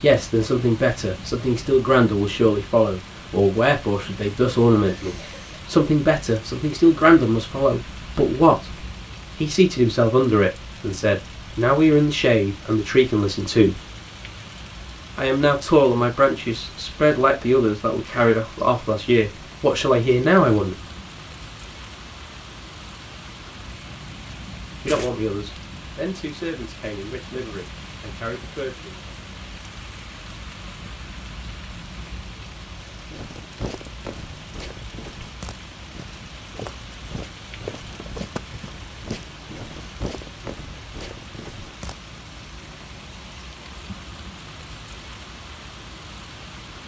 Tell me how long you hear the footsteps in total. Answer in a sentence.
You can hear the footsteps for 9 seconds altogether.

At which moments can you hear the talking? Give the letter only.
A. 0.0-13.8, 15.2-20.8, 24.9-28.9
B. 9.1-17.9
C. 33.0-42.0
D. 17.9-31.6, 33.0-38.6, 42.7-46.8
A.